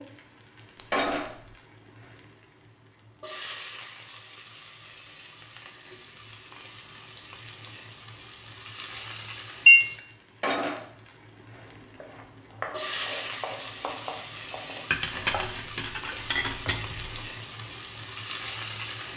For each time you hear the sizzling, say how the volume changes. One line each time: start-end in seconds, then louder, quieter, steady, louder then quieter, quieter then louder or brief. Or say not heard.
0.0-19.1 quieter then louder.